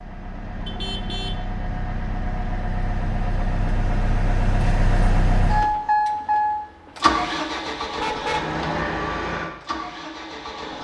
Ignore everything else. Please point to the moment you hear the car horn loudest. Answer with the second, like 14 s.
8 s.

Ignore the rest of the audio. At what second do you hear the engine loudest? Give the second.
6 s.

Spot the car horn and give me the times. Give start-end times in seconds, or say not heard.
0.7-1.4, 8.0-8.6.